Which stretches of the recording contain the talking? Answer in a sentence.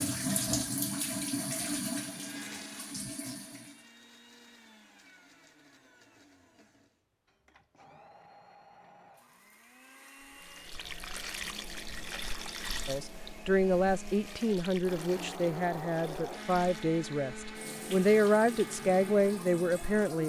You can hear the talking from 12.8 to 20.2 s.